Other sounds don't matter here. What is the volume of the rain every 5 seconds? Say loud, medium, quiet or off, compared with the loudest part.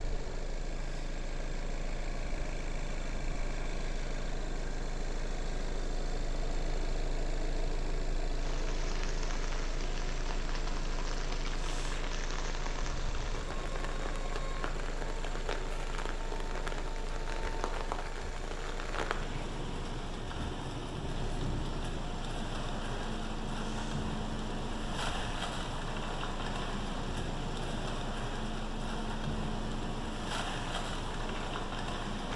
off, medium, medium, loud, loud, loud, loud.